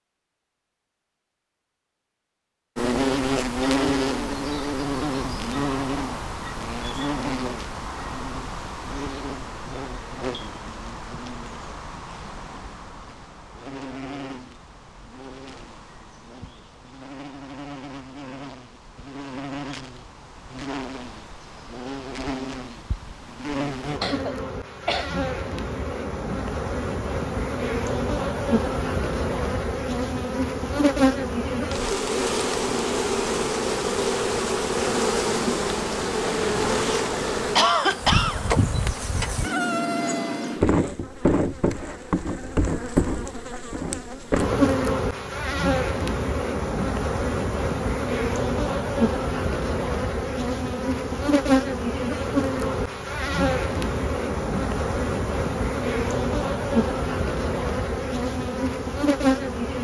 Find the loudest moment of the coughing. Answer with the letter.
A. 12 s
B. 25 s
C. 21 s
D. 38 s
D.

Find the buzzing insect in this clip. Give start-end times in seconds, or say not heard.
2.8-59.7.